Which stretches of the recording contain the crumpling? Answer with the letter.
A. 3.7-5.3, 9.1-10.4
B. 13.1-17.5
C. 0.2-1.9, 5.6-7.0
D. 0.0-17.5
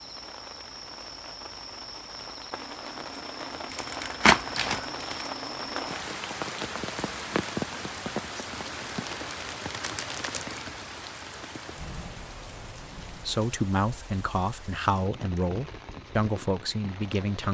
A.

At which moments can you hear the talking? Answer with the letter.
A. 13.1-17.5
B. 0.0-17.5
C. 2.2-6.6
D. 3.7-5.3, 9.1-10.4
A.